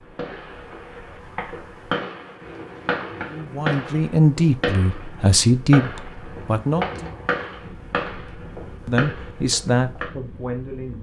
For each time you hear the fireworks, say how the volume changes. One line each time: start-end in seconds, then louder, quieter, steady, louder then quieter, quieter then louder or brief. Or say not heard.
0.1-10.1 steady.